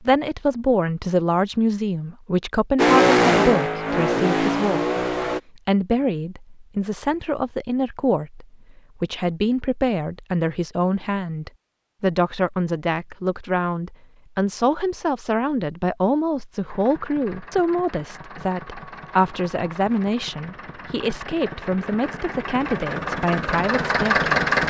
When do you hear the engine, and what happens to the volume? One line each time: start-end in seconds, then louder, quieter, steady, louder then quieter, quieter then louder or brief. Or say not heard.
2.8-5.4 brief
16.6-24.6 louder.